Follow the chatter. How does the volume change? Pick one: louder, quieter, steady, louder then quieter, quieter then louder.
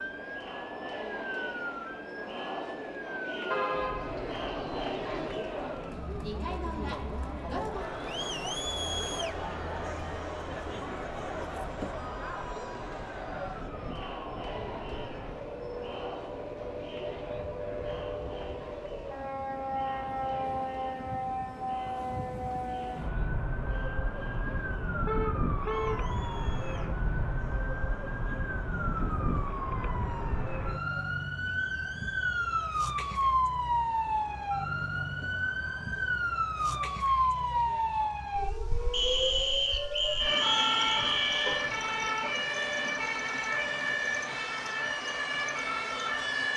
quieter.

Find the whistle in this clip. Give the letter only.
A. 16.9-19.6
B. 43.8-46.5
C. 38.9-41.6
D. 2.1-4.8
C.